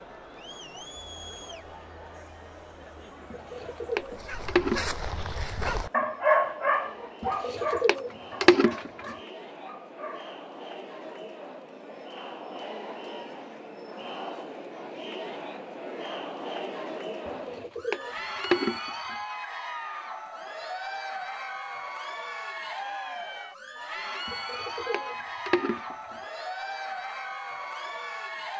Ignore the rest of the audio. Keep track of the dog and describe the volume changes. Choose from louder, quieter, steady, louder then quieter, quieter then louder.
louder then quieter.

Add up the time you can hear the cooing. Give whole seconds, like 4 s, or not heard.
7 s.